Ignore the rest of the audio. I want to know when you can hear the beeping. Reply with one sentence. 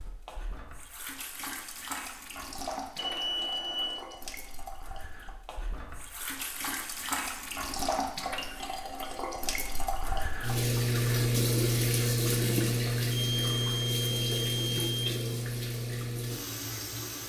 The beeping can be heard from 3.0 to 4.1 s and from 13.1 to 14.8 s.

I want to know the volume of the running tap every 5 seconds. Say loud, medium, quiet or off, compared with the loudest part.
quiet, medium, loud, medium.